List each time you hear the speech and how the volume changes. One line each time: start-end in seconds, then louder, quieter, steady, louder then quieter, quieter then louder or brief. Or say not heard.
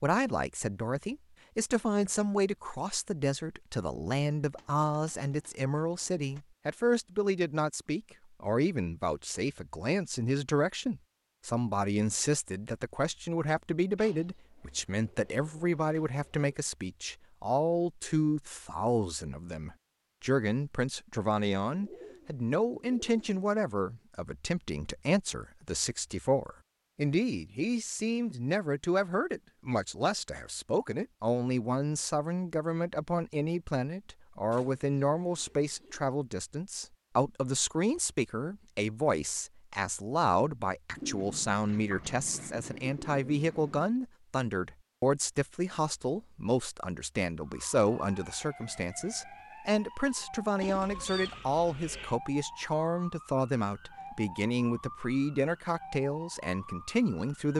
0.0-57.5 steady.